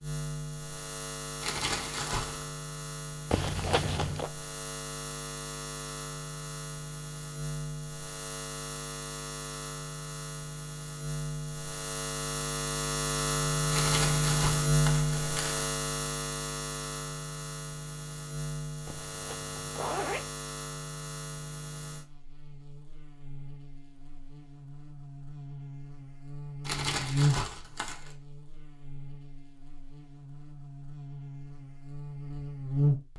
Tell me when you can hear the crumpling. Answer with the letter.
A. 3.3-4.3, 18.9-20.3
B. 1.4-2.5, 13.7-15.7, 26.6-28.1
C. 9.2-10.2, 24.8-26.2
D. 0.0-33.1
B.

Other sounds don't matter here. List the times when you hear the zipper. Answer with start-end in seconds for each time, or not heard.
3.3-4.3, 18.9-20.3.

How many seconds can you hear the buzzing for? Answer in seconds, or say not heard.
33 s.